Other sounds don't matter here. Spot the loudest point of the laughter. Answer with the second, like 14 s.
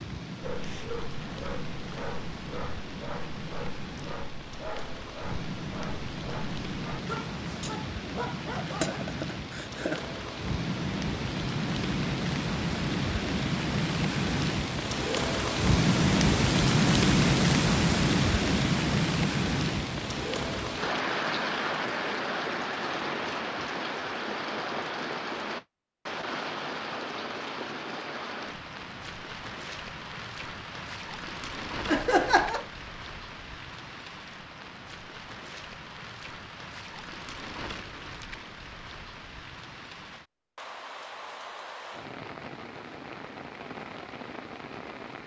32 s.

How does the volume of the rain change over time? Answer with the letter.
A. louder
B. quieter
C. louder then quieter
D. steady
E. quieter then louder
C.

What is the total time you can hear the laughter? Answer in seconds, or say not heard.
2 s.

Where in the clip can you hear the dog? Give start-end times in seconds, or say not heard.
0.4-9.1.